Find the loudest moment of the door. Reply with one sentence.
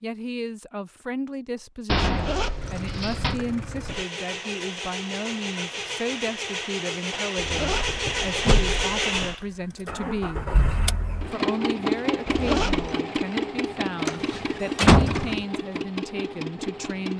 The loudest moment of the door is at 15 seconds.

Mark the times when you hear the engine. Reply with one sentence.
The engine can be heard from 2.5 to 17.1 s.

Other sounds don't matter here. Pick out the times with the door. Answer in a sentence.
The door can be heard from 1.9 to 3.4 s, from 7.8 to 8.8 s and from 14.1 to 15.4 s.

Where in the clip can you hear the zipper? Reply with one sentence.
The zipper can be heard from 2.0 to 4.0 s, from 7.3 to 9.3 s and from 12.2 to 13.0 s.